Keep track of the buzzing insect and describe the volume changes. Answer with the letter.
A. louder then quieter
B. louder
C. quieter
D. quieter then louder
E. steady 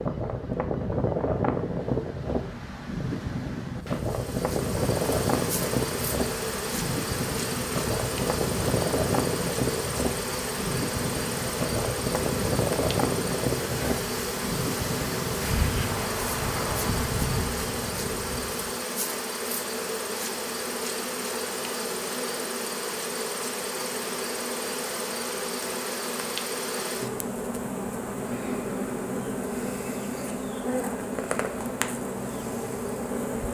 E.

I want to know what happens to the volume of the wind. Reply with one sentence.
The volume of the wind stays about the same.